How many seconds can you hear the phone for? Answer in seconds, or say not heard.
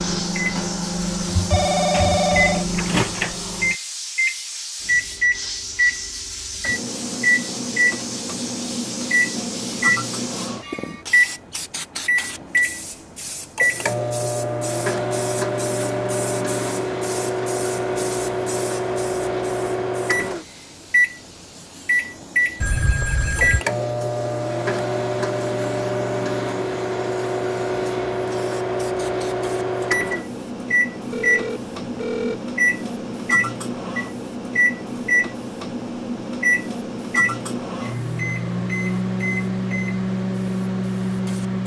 4 s.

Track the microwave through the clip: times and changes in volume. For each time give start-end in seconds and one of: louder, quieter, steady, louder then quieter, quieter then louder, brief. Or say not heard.
0.0-41.6 steady.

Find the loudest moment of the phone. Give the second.
2 s.